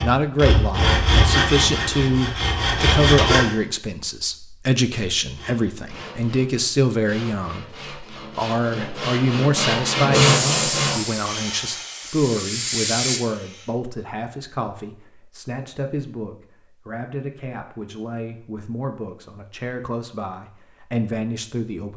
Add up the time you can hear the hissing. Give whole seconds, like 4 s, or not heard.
3 s.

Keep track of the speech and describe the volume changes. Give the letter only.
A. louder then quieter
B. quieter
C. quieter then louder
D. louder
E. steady
B.